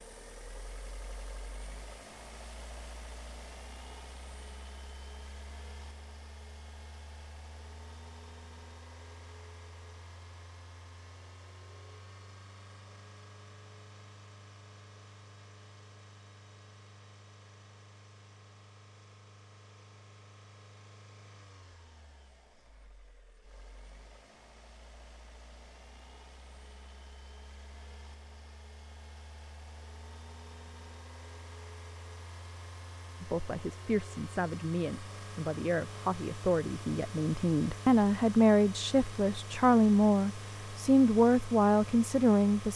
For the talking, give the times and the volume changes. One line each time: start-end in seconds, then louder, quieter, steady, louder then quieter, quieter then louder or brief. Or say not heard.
33.2-42.7 louder.